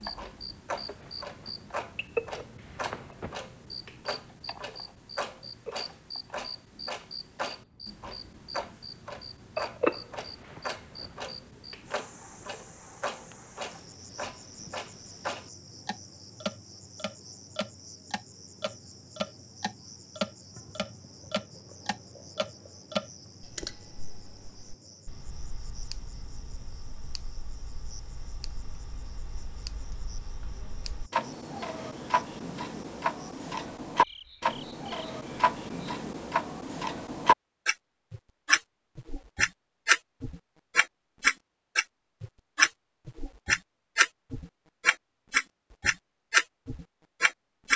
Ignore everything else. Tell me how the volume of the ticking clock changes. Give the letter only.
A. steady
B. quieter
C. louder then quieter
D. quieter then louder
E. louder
E.